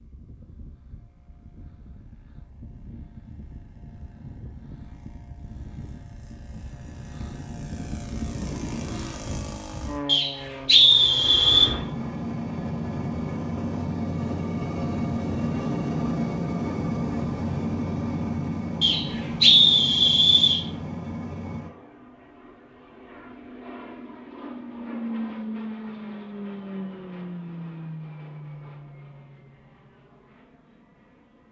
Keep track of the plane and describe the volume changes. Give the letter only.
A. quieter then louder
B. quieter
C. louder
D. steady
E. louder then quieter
E.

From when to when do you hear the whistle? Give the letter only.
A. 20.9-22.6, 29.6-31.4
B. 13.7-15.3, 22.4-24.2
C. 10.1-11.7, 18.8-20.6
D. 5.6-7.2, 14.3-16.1
C.